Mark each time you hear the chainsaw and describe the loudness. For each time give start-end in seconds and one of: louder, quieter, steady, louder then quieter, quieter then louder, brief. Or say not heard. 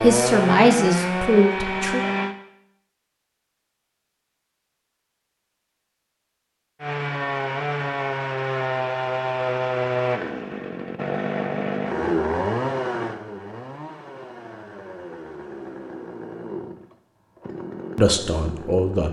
0.0-2.4 brief
6.8-19.0 quieter.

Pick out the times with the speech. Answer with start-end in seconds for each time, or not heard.
0.0-2.0, 17.9-19.0.